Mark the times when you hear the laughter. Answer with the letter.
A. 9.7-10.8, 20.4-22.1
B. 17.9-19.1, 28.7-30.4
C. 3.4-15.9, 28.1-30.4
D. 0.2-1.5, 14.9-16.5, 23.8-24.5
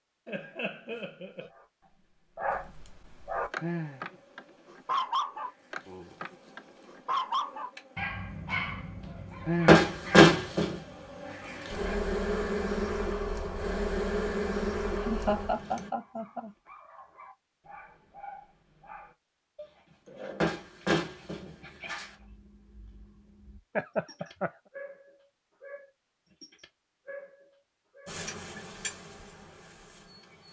D.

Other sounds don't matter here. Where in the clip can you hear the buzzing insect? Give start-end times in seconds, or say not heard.
3.4-15.9, 28.1-30.4.